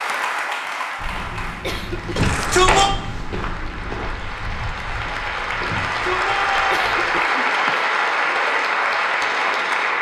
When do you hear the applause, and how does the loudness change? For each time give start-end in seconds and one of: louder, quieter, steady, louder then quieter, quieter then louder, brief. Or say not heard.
0.0-9.9 quieter then louder.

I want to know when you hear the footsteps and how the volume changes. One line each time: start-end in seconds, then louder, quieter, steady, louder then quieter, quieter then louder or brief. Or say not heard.
0.9-7.2 louder then quieter.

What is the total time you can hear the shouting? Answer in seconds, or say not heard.
2 s.